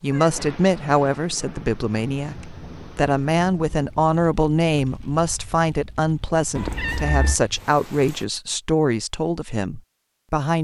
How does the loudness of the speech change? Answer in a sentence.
The loudness of the speech stays about the same.